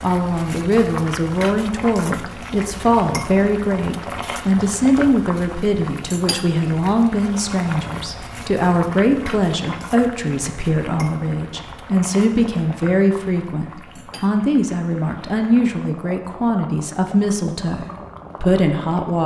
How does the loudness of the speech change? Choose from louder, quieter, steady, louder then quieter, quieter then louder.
steady.